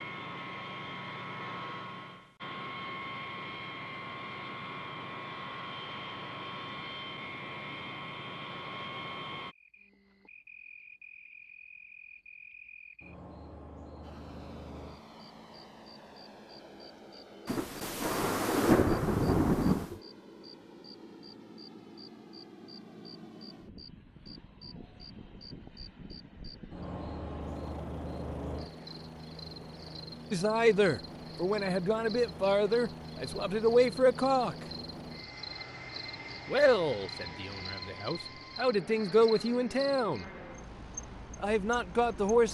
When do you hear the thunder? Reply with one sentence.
You can hear the thunder from 17.4 to 20.0 s.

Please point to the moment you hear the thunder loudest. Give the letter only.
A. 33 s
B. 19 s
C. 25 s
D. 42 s
B.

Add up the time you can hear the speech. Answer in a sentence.
You can hear the speech for 9 seconds altogether.